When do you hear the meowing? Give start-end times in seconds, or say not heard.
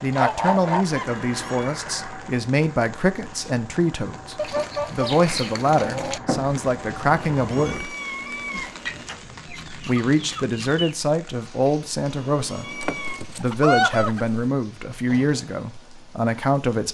1.0-1.8, 7.3-9.1, 12.1-13.2.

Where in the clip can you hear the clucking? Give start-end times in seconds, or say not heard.
0.1-1.1, 4.3-6.2, 8.8-10.9, 12.8-14.4.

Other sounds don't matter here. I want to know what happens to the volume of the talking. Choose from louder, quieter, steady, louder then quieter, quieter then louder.
steady.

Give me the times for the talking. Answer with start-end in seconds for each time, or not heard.
0.0-8.0, 9.7-16.8.